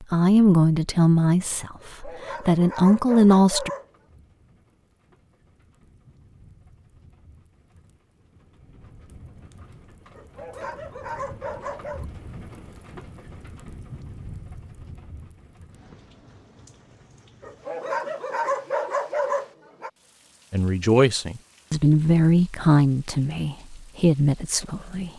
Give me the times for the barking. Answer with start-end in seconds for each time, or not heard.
1.8-3.9, 10.2-12.1, 17.4-19.9.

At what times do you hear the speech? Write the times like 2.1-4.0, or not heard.
0.0-3.7, 20.5-25.1.